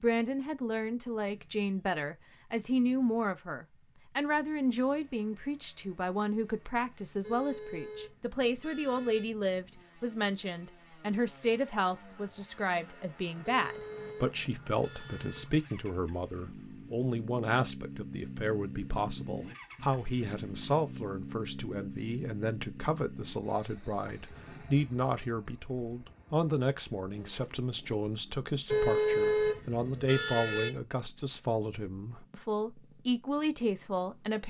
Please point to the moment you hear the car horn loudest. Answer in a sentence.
The volume of the car horn peaks at 29 seconds.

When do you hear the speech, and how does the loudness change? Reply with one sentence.
You can hear the speech from 0.0 to 34.4 s, at a steady volume.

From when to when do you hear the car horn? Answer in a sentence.
You can hear the car horn from 7.2 to 9.2 s, from 13.5 to 15.4 s and from 28.6 to 30.7 s.